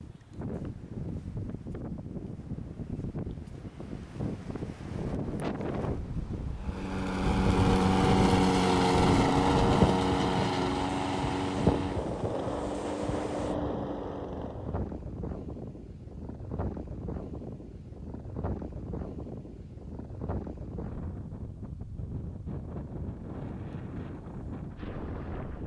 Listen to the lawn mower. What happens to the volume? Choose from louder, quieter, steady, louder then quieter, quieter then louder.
quieter.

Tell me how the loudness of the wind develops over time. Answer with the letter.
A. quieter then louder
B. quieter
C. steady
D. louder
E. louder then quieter
E.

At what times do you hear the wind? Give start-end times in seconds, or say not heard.
0.0-25.6.